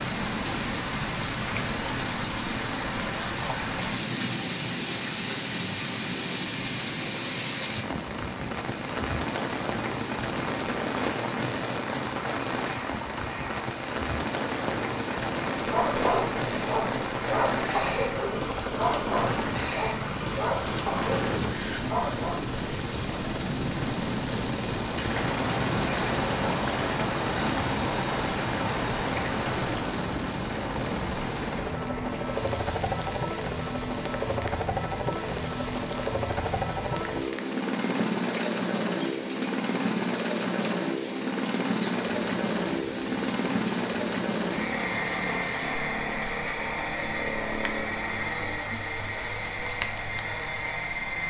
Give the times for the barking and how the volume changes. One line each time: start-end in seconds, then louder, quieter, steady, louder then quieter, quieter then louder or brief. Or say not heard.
15.6-22.6 steady.